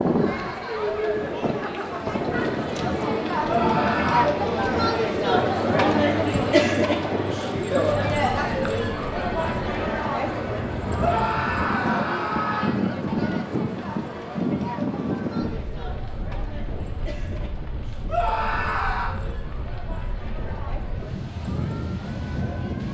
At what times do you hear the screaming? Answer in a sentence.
The screaming can be heard from 3.5 to 4.3 s, from 10.9 to 12.8 s and from 18.1 to 19.2 s.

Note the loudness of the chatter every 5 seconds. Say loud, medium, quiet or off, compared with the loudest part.
loud, loud, medium, quiet, quiet.